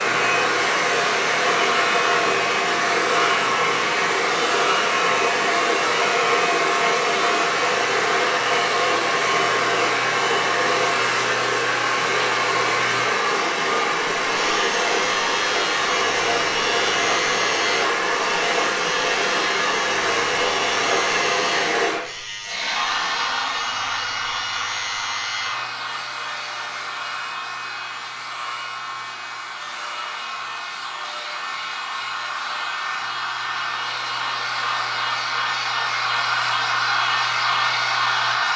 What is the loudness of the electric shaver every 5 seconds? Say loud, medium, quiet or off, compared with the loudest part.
loud, loud, loud, loud, medium, medium, medium, medium.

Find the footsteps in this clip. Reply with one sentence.
The footsteps can't be heard in this clip.